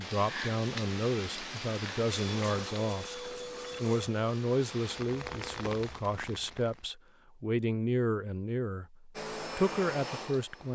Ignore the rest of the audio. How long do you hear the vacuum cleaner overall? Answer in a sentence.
You can hear the vacuum cleaner for 5 seconds altogether.